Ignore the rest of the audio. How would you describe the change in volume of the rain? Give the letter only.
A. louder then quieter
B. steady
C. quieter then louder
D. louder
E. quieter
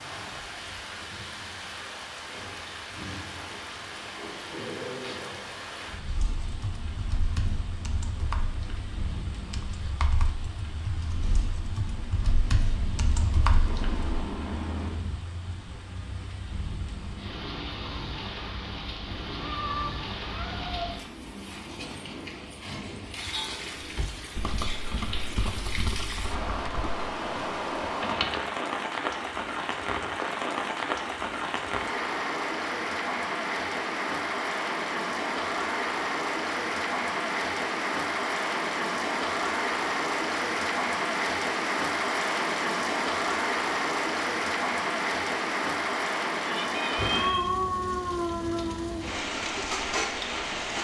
D.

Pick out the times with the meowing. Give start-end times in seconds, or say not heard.
13.7-15.1, 19.4-20.9, 46.6-47.4.